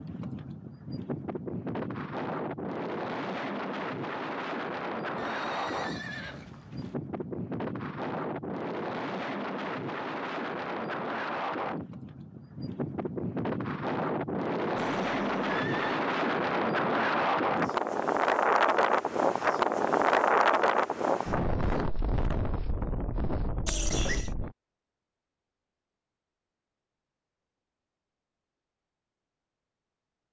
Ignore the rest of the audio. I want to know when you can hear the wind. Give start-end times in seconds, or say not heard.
0.0-24.6.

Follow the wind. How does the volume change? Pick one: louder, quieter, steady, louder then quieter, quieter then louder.
louder.